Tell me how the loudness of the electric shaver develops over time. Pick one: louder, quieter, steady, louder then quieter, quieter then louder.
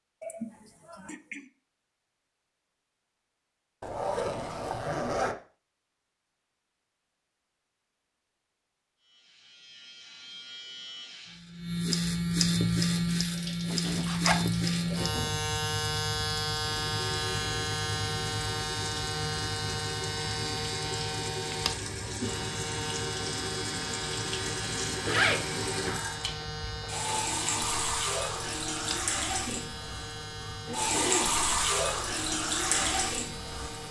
quieter.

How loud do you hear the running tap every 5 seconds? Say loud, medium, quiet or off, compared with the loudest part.
off, off, quiet, medium, medium, loud, loud.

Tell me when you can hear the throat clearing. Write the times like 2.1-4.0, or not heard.
0.2-1.4, 13.7-15.4, 30.6-31.4.